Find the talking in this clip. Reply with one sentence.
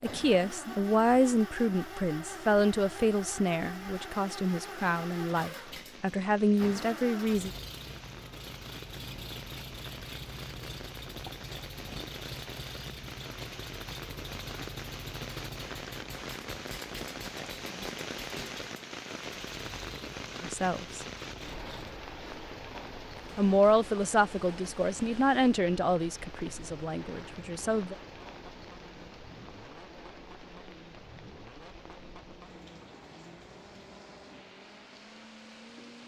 The talking can be heard from 0.0 to 7.5 s, from 20.4 to 21.1 s and from 23.4 to 27.9 s.